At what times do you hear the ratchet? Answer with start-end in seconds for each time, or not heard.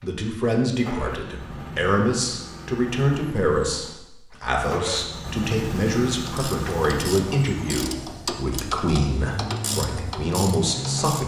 6.2-11.2.